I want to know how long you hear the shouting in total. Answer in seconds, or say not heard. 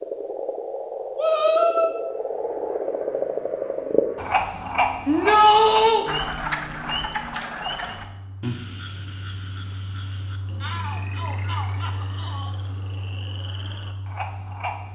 4 s.